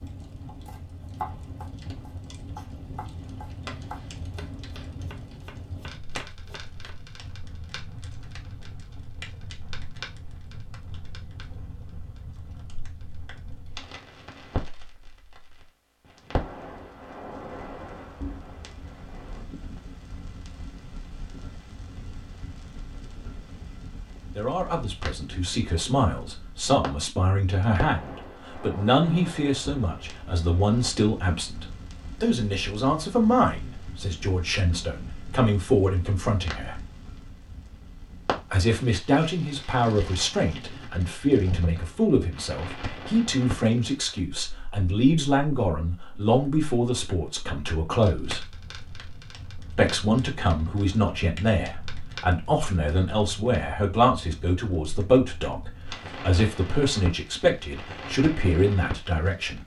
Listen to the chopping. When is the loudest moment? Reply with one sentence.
The loudest moment of the chopping is at 1 second.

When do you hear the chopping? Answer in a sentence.
You can hear the chopping from 0.5 to 7.0 s.